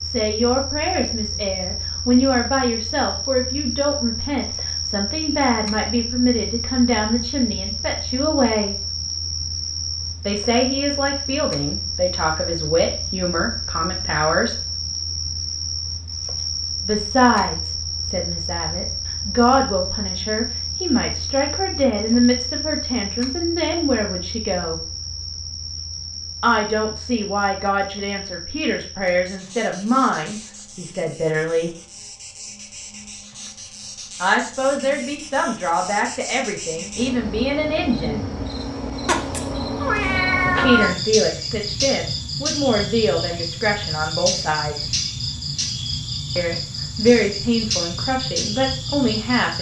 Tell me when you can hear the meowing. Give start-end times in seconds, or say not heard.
39.0-40.9.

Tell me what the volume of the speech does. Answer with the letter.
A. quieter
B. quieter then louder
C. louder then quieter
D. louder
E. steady
E.